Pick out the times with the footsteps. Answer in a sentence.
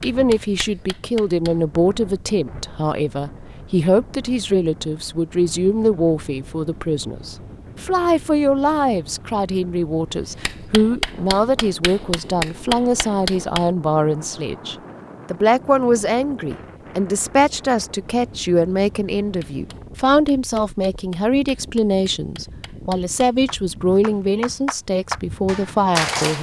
You can't hear the footsteps here.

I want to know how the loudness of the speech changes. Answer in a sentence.
The loudness of the speech stays about the same.